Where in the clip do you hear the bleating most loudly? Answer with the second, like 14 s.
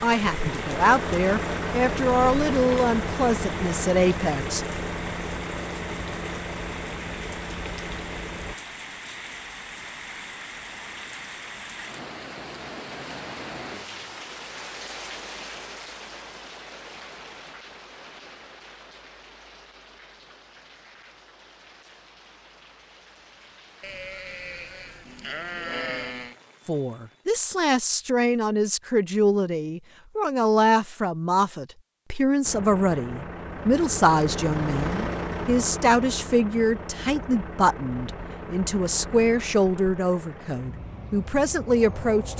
26 s.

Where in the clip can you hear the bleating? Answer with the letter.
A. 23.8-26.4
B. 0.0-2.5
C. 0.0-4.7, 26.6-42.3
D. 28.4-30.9
A.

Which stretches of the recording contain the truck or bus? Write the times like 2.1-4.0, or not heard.
0.0-8.6, 32.4-42.3.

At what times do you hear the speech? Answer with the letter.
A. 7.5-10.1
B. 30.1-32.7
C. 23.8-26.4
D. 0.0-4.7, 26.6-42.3
D.